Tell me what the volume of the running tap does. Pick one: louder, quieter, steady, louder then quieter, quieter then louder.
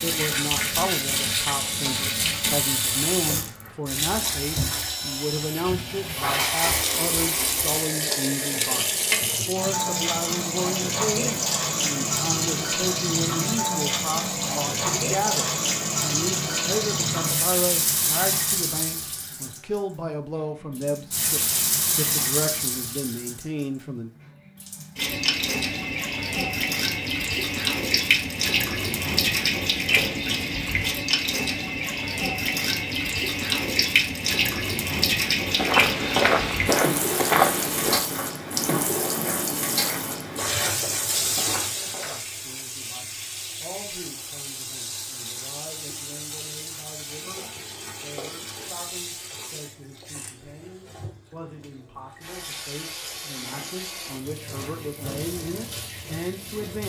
quieter.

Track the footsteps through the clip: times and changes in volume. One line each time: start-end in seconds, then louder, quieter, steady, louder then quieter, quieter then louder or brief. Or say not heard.
35.4-42.3 quieter.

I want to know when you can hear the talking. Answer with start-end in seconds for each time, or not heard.
0.0-24.1, 42.0-56.8.